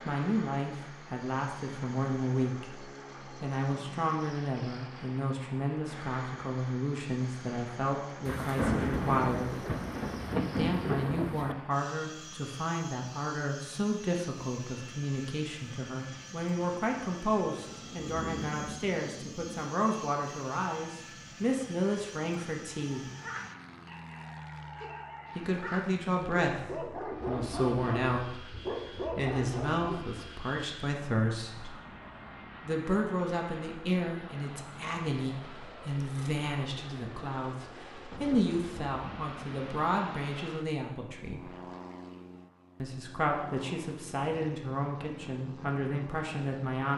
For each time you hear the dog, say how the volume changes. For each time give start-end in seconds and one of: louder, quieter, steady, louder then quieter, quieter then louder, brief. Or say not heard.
22.7-30.4 louder.